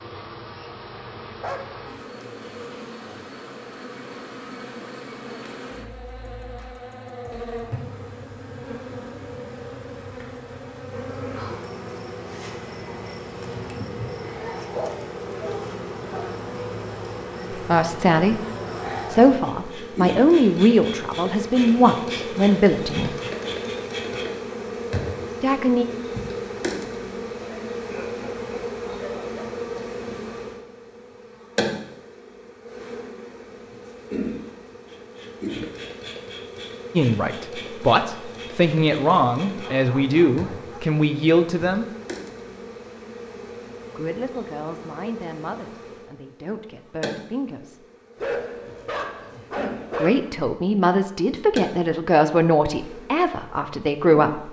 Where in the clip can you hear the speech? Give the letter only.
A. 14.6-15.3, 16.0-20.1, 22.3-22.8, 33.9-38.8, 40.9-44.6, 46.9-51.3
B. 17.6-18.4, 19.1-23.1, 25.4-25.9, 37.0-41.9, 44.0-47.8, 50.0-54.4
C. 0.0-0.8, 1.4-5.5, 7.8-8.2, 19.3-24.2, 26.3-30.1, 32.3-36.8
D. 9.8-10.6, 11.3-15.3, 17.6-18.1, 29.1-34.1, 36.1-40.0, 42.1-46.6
B.